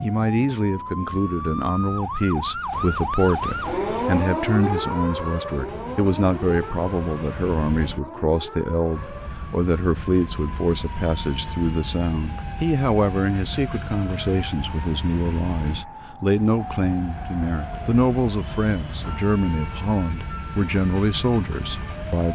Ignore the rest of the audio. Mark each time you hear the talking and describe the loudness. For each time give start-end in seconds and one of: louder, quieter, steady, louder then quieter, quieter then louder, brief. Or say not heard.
0.0-22.2 steady.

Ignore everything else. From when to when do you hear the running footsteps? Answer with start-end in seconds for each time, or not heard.
not heard.